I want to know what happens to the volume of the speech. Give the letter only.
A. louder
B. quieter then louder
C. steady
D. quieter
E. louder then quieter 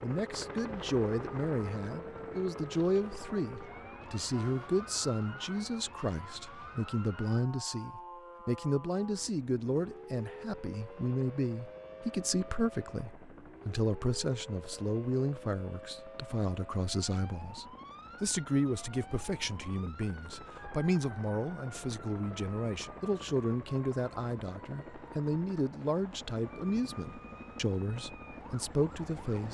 C.